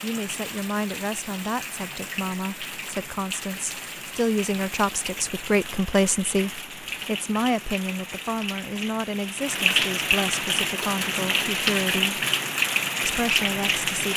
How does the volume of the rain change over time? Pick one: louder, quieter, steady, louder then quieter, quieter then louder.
louder.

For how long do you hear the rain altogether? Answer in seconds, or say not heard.
14 s.